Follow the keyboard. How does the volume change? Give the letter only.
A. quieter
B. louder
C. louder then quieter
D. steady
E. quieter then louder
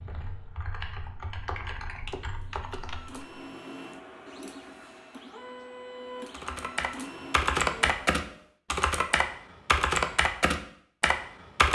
B.